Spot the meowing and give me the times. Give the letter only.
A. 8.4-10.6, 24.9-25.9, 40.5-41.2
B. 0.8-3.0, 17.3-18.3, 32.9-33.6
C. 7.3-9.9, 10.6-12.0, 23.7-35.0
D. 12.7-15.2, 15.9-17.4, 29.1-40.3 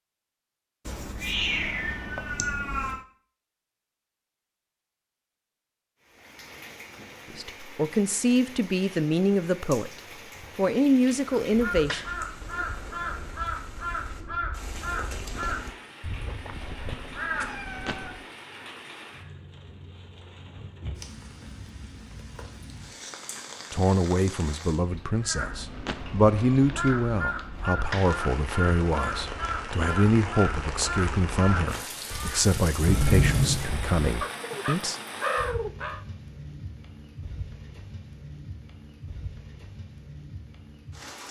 B.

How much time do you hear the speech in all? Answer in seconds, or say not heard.
15 s.